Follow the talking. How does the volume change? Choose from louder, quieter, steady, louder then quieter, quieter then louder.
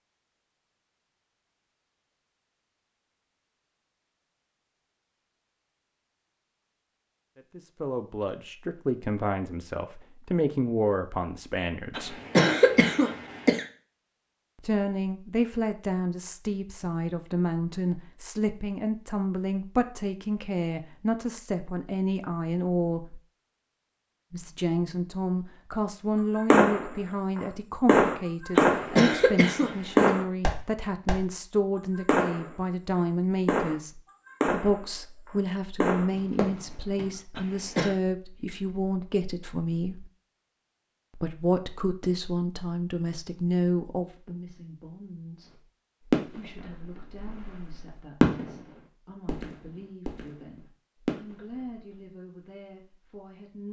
quieter.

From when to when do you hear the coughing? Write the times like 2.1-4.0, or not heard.
11.9-13.7, 28.7-30.1, 37.4-38.0.